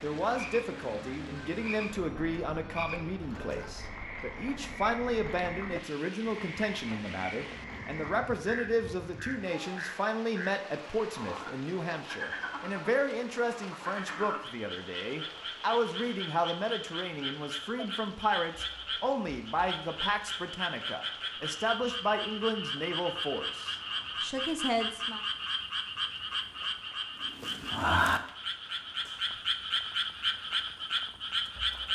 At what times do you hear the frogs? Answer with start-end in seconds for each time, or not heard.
0.0-31.9.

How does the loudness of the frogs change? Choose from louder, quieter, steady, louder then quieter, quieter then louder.
louder.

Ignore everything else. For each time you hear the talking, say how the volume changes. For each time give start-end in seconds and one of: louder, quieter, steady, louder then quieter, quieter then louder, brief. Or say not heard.
0.0-25.2 steady.